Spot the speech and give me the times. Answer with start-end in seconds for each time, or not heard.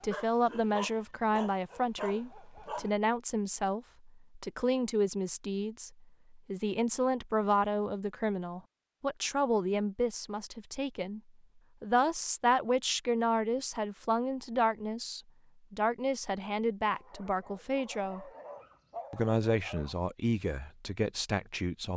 0.0-11.2, 11.8-18.3, 19.1-21.9.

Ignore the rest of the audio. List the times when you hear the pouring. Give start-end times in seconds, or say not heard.
not heard.